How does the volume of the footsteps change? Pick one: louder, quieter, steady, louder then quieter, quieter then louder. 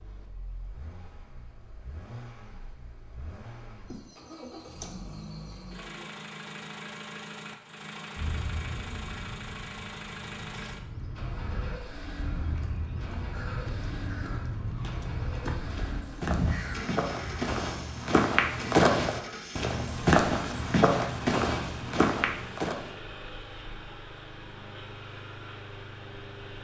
louder.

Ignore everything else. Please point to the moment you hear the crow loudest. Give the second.
16 s.